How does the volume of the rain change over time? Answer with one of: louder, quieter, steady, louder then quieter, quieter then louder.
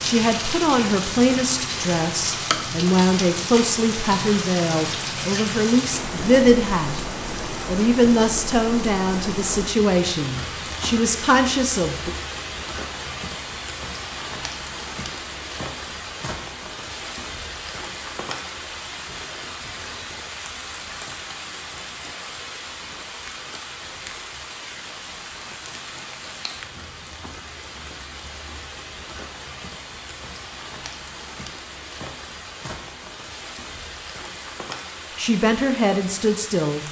quieter.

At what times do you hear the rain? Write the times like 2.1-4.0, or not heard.
0.0-36.8.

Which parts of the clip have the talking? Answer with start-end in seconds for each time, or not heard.
0.0-7.0, 7.7-12.1, 35.1-36.8.